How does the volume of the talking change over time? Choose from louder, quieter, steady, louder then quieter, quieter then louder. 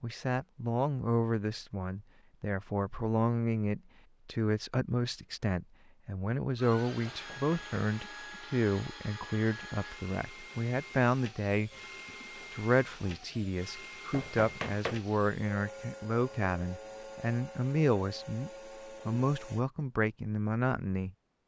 steady.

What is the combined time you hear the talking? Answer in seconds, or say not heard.
20 s.